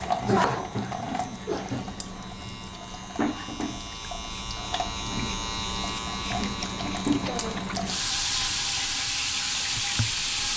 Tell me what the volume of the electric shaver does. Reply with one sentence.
The loudness of the electric shaver goes up, then down.